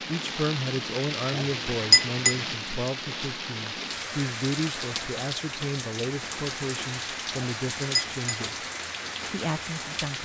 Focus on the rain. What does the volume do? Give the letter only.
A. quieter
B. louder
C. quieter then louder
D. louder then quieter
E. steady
E.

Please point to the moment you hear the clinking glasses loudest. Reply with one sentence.
The loudest moment of the clinking glasses is at 2 seconds.